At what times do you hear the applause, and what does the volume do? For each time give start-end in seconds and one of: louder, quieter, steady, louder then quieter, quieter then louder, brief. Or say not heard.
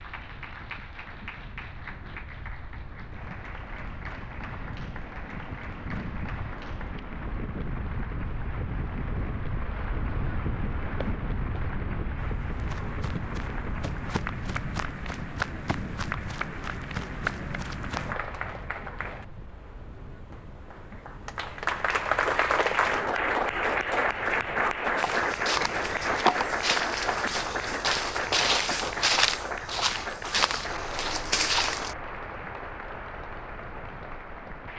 0.0-34.7 louder then quieter.